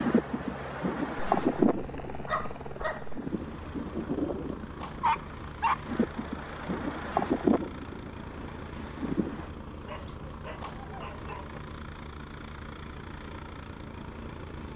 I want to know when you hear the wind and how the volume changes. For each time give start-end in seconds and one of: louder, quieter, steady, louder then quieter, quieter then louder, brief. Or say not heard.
0.0-9.5 quieter then louder.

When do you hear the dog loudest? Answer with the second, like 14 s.
5 s.